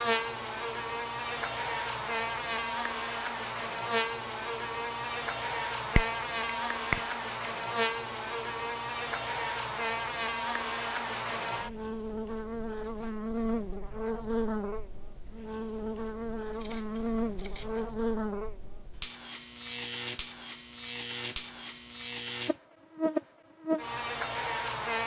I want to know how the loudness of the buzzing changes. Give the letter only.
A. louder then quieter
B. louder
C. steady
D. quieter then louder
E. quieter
C.